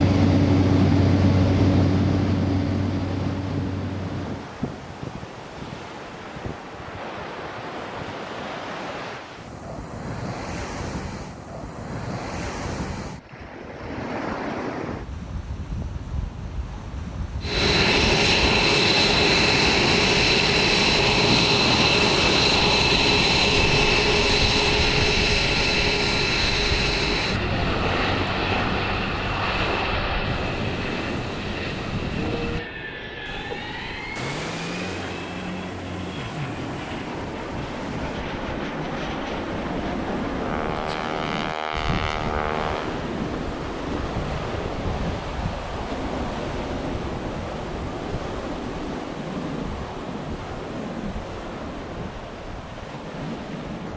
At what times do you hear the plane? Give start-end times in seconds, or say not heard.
0.0-4.5, 17.4-43.0.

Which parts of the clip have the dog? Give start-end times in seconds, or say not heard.
not heard.